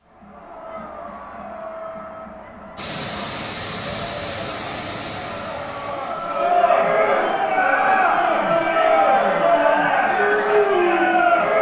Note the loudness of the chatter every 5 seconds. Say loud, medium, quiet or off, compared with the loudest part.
quiet, loud, loud.